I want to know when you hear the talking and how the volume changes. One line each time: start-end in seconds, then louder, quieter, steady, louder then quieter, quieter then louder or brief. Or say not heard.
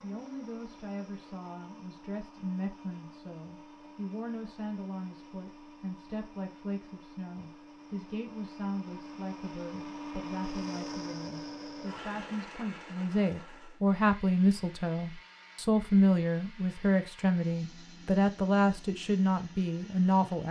0.0-20.4 louder.